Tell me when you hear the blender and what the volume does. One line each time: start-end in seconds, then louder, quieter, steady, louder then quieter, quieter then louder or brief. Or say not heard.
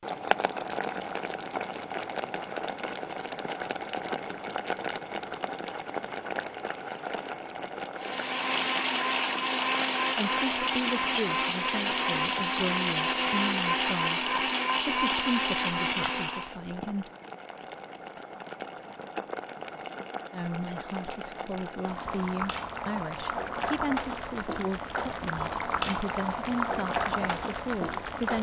8.0-16.6 steady.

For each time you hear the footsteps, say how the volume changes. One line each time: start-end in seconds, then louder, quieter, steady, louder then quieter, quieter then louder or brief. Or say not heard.
not heard.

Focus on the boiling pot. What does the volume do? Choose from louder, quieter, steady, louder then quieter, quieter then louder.
quieter then louder.